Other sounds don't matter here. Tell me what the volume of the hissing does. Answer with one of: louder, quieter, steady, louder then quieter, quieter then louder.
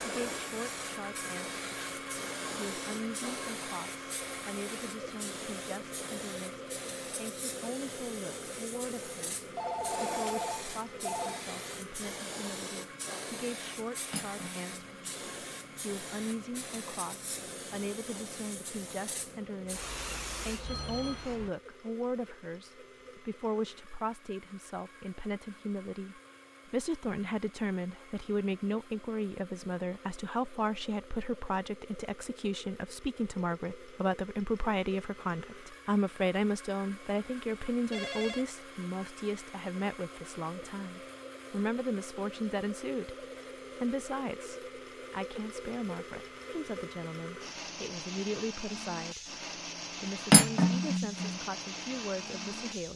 steady.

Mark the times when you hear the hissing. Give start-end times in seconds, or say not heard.
0.0-21.5.